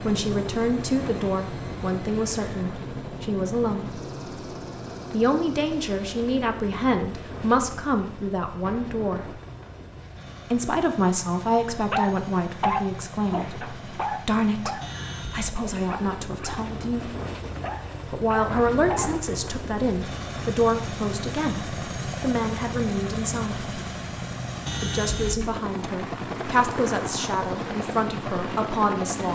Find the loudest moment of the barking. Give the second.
13 s.